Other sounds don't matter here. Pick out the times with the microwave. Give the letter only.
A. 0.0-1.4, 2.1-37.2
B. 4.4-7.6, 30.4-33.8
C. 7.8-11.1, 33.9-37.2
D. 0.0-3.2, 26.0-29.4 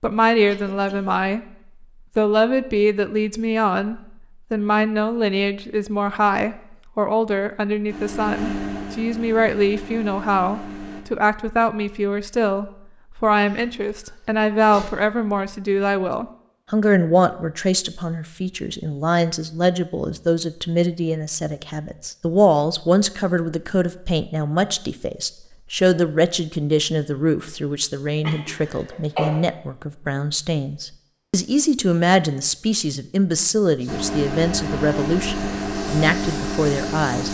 C.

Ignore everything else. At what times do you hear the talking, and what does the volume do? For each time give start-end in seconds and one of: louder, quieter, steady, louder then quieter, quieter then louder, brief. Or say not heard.
0.0-1.4 brief
2.1-37.2 steady.